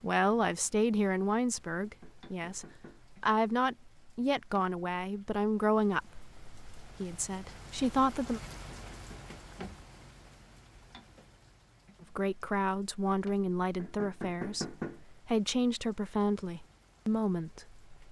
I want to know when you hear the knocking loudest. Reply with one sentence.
The volume of the knocking peaks at 15 seconds.